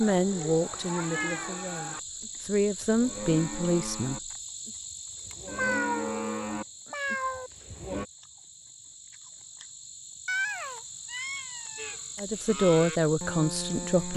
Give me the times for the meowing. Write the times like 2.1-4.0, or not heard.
0.9-1.6, 5.5-7.5, 10.2-11.9.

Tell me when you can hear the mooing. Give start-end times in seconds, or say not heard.
0.0-8.1, 11.8-14.1.